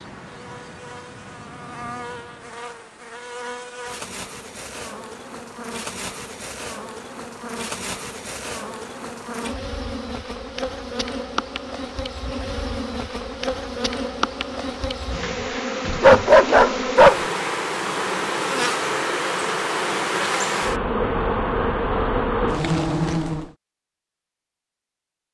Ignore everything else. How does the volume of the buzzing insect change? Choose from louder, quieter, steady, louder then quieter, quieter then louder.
louder.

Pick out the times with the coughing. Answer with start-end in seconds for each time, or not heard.
not heard.